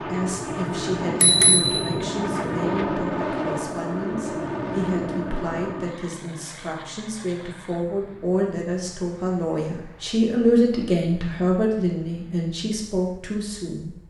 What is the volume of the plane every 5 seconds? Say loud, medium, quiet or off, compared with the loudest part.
loud, medium, quiet.